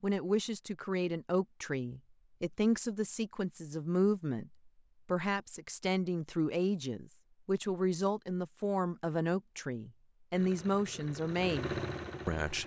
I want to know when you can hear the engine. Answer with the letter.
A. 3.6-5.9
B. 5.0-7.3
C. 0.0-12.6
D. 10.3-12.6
D.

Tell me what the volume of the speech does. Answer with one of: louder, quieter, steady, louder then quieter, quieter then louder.
steady.